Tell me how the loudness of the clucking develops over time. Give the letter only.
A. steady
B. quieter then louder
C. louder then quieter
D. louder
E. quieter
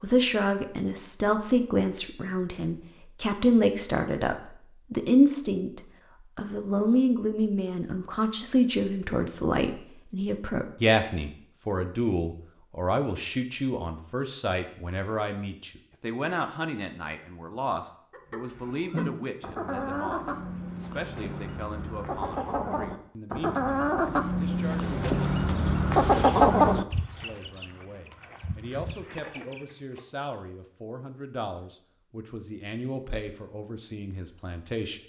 C.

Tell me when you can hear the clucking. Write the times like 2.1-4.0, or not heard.
18.1-30.0.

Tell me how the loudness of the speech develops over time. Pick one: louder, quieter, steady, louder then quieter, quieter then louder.
quieter.